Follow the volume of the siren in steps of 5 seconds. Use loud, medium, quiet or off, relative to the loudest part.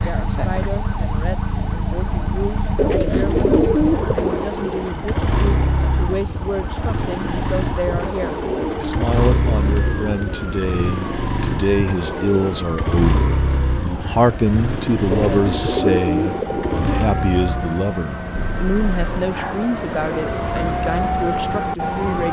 medium, medium, medium, medium, loud.